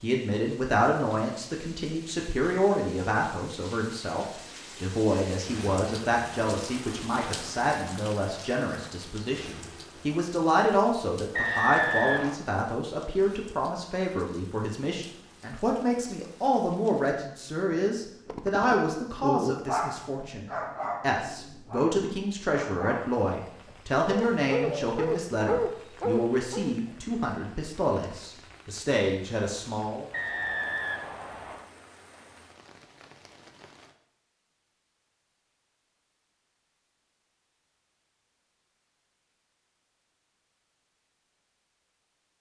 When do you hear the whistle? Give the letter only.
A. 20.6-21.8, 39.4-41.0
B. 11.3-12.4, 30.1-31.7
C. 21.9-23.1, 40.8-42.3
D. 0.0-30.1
B.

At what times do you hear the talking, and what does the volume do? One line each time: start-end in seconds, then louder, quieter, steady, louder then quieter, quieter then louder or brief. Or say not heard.
0.0-30.1 steady.